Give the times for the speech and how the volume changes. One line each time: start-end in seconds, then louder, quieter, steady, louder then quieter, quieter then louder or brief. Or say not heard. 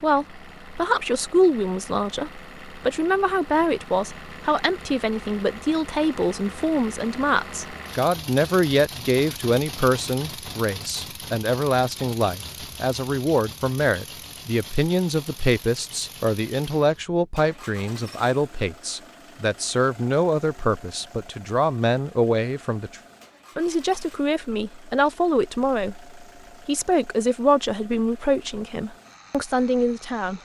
0.0-30.3 steady.